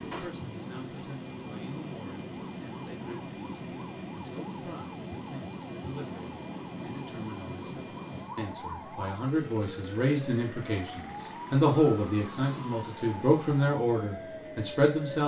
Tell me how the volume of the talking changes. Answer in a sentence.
The loudness of the talking goes up.